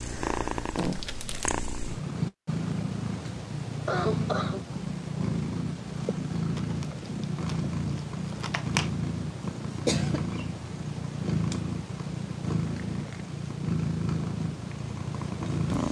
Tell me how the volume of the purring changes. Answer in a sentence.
The loudness of the purring stays about the same.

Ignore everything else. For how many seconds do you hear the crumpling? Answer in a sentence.
The crumpling can be heard for 4 seconds in total.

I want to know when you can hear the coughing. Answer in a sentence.
The coughing can be heard from 3.9 to 4.6 s and from 9.8 to 10.5 s.